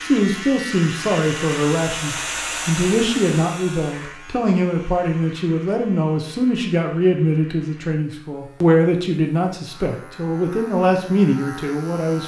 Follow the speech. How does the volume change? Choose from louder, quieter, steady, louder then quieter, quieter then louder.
steady.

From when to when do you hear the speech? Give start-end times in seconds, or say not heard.
0.0-12.2.